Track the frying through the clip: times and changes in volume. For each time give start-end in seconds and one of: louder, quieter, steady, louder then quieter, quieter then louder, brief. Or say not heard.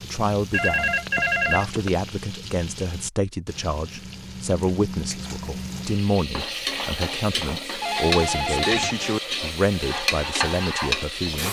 0.0-11.4 louder.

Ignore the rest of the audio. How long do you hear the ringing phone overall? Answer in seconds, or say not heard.
3 s.